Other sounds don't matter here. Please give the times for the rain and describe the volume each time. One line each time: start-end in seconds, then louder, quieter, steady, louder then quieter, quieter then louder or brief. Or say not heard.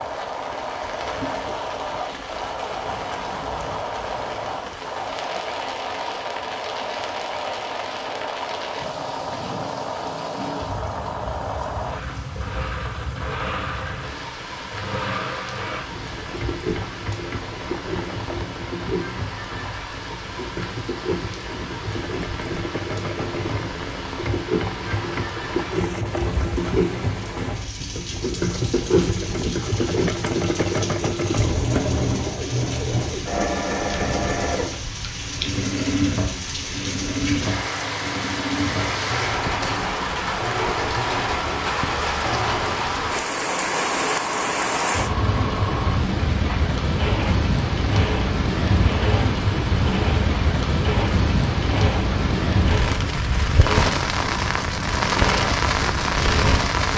0.0-56.9 louder.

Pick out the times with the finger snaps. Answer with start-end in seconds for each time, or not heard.
not heard.